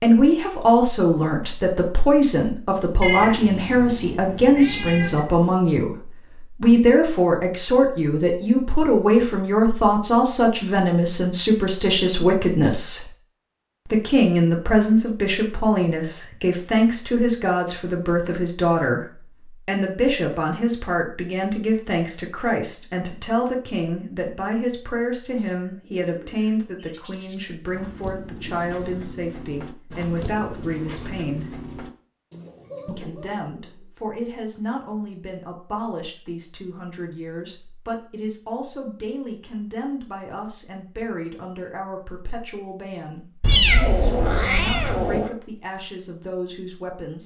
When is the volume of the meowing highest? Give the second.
44 s.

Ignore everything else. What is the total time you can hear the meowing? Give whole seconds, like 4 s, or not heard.
4 s.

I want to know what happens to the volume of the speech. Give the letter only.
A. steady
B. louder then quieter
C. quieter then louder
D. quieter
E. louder
D.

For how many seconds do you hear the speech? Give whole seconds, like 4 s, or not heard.
45 s.